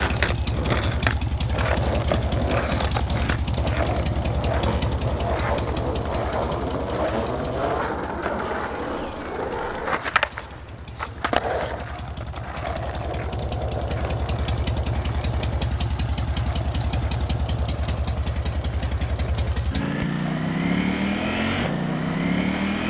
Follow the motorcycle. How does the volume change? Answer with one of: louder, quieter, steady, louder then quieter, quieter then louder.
quieter then louder.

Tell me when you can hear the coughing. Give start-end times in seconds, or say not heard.
not heard.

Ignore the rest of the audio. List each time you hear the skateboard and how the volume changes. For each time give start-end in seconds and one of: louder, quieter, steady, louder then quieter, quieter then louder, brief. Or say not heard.
0.0-22.8 quieter.